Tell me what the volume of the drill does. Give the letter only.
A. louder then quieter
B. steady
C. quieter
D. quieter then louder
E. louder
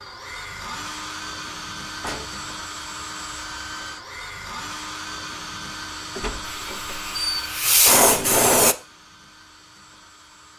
C.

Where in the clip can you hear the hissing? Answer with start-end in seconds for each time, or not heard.
6.4-8.8.